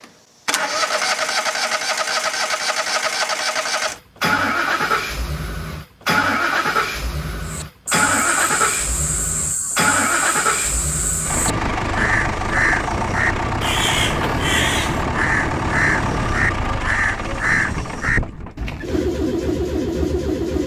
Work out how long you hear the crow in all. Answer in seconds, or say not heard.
12 s.